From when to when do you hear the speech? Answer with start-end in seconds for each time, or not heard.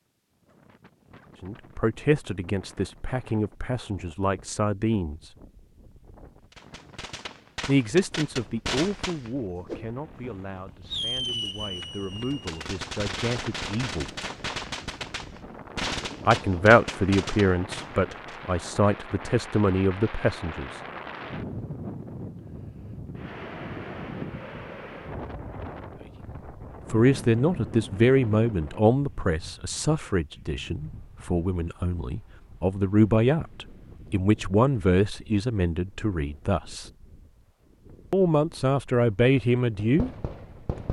1.4-5.3, 7.7-14.1, 16.2-20.8, 26.9-36.9, 38.1-40.1.